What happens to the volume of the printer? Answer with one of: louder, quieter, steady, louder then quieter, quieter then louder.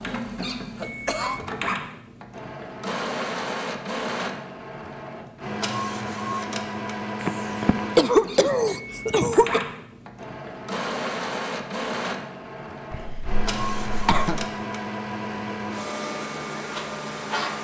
steady.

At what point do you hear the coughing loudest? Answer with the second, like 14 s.
8 s.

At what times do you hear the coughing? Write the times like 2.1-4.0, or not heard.
0.8-1.4, 7.2-9.6, 12.9-14.4.